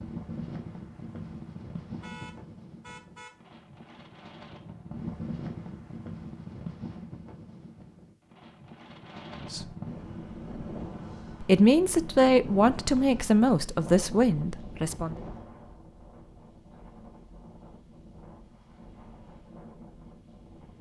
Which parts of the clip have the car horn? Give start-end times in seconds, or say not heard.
2.0-3.4.